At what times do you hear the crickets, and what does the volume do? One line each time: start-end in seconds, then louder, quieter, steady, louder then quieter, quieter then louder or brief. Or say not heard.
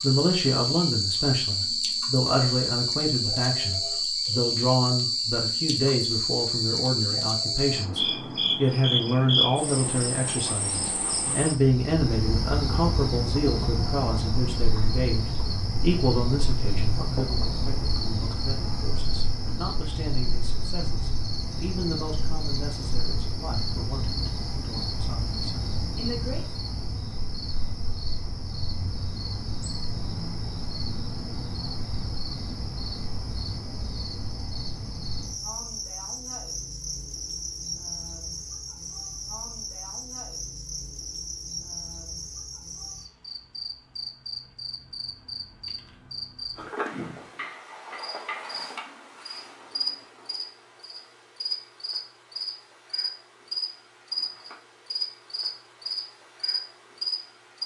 0.0-57.6 quieter.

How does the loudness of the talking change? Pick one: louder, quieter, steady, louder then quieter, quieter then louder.
quieter.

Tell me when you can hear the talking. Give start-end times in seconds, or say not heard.
0.0-26.4.